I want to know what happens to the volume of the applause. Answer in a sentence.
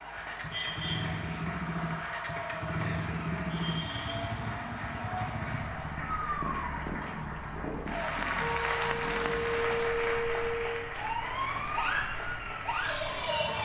The volume of the applause goes up, then down.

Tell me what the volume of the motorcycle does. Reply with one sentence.
The volume of the motorcycle goes down.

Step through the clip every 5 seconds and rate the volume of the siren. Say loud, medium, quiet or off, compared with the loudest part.
medium, loud, loud.